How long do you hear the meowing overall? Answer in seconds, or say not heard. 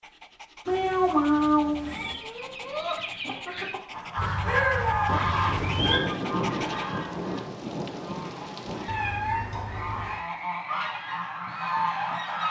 5 s.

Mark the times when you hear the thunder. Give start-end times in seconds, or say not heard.
5.0-8.9.